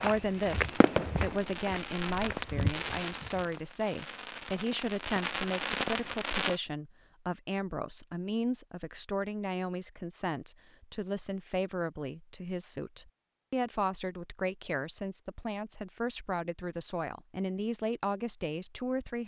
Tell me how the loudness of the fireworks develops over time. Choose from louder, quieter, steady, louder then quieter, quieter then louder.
quieter then louder.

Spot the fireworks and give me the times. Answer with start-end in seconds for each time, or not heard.
0.2-6.6.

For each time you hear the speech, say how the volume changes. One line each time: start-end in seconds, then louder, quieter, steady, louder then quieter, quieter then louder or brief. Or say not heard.
0.0-19.2 steady.